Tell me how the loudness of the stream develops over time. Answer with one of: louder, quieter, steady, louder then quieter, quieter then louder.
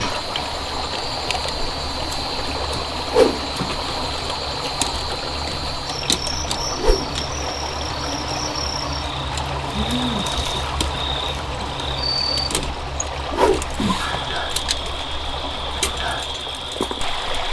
steady.